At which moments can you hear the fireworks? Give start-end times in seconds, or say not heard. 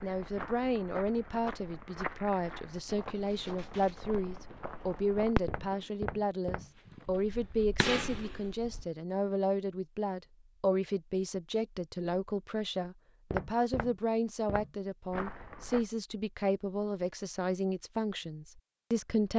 3.2-4.5, 5.3-5.8, 6.6-7.0, 7.8-8.4.